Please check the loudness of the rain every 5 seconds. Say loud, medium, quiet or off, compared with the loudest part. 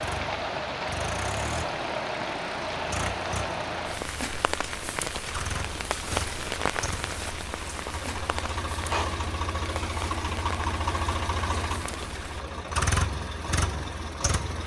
loud, loud, medium.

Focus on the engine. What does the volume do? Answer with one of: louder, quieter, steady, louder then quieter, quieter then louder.
louder.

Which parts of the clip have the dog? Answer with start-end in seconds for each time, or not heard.
not heard.